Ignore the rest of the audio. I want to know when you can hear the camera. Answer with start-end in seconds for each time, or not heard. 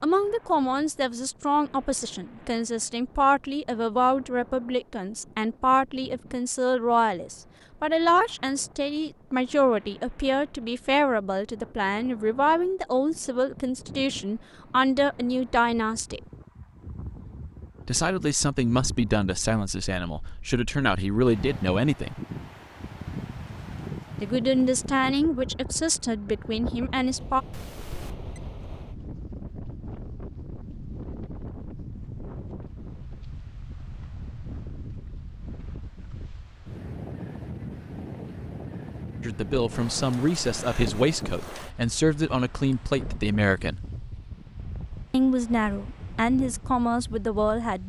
27.5-28.4.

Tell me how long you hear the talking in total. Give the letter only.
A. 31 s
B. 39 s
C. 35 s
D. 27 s
A.